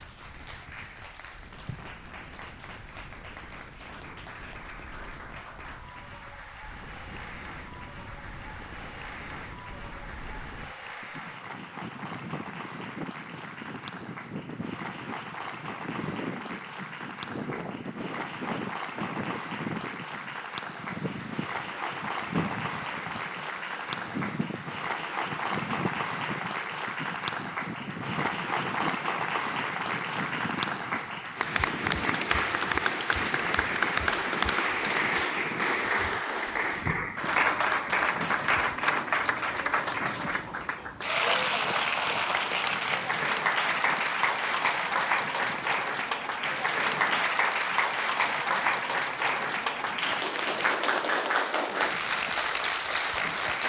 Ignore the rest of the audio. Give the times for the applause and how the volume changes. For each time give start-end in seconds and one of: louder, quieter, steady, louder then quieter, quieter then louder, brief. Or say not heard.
0.0-53.6 louder.